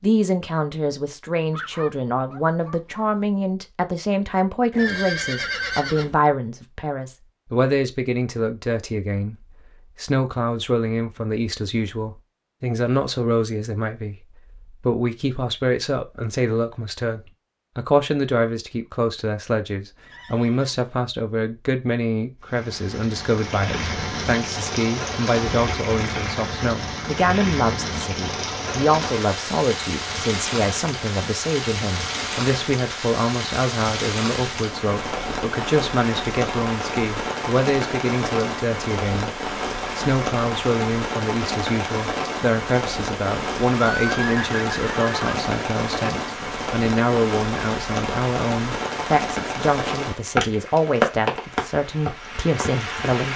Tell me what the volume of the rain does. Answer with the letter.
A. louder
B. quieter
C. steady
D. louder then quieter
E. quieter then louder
C.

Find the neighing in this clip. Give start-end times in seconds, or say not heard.
4.7-6.2, 20.0-20.9, 43.8-45.4.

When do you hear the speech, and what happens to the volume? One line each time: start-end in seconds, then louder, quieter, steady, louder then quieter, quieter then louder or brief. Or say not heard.
0.0-53.3 steady.